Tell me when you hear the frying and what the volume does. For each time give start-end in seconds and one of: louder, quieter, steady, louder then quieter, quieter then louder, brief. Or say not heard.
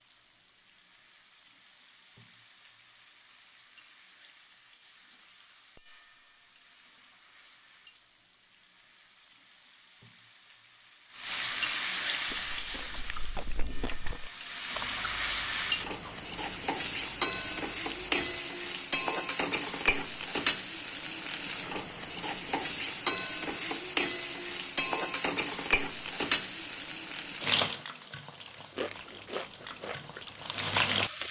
0.0-31.2 louder.